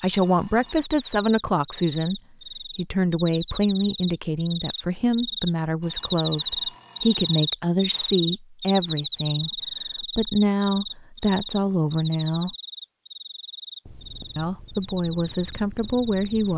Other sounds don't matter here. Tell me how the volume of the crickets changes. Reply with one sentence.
The loudness of the crickets goes up, then down.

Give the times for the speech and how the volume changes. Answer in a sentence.
You can hear the speech from 0.0 to 12.6 s, at a steady volume; and briefly from 14.3 to 16.5 s.